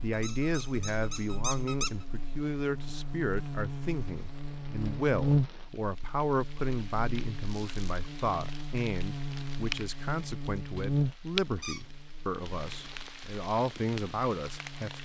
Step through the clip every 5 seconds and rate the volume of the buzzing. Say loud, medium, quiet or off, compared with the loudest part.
medium, loud, loud.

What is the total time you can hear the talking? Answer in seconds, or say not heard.
15 s.